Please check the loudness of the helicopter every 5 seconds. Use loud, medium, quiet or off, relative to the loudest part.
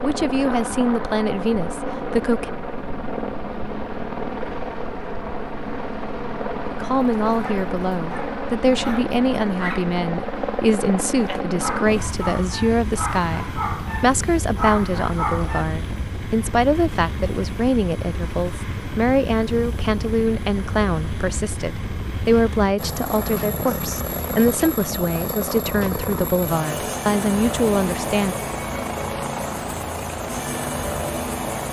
loud, loud, loud, medium, loud, loud, loud.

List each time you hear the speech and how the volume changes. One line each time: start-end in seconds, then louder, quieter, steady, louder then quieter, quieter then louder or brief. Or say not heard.
0.0-2.5 brief
6.6-28.4 steady.